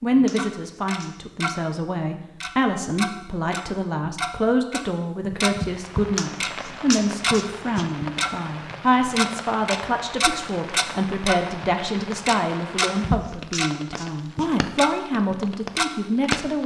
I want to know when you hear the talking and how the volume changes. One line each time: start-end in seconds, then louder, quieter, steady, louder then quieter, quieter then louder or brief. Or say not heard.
0.0-16.6 steady.